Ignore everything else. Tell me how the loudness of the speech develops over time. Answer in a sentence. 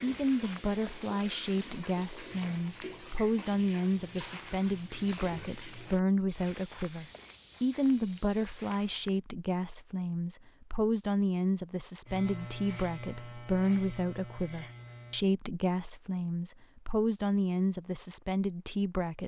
The volume of the speech stays about the same.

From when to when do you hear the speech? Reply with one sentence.
The speech can be heard from 0.0 to 19.2 s.